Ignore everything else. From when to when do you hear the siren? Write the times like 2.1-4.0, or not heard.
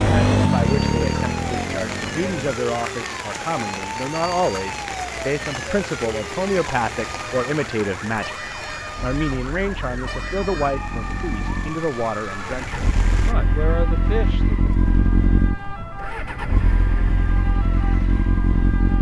0.1-18.9.